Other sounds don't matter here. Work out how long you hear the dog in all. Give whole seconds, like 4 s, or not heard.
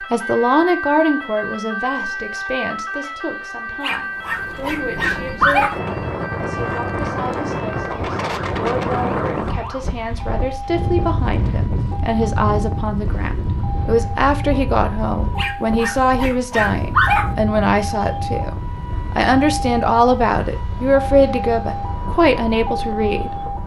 4 s.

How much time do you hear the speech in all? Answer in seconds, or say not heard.
23 s.